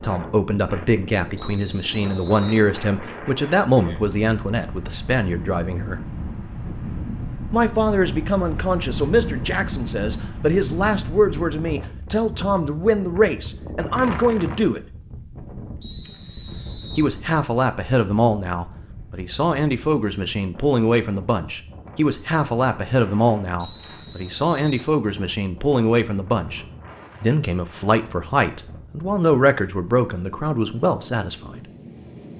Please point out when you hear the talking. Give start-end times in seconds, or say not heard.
0.0-6.0, 7.5-14.8, 16.9-31.6.